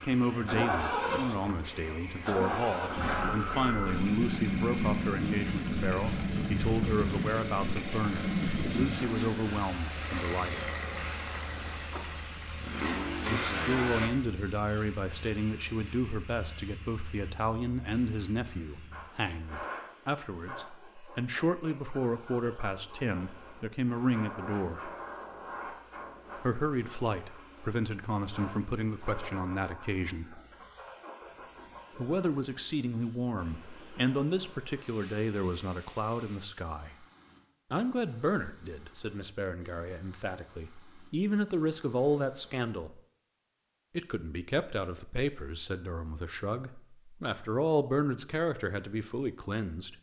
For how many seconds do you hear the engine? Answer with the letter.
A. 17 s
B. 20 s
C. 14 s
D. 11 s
C.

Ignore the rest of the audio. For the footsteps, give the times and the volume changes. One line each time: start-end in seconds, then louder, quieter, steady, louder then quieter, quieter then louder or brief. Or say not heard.
not heard.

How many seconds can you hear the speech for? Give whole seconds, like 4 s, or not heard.
43 s.